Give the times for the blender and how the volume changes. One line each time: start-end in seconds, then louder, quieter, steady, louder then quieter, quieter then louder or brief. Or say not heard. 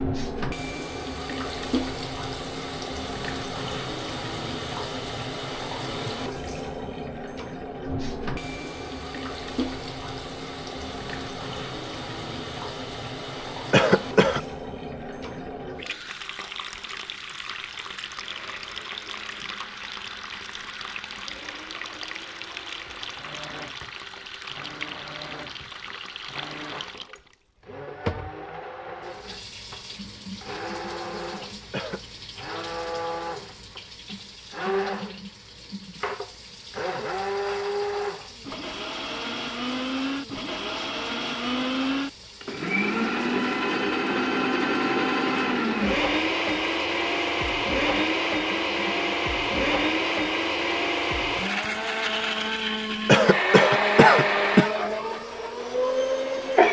18.1-56.6 louder.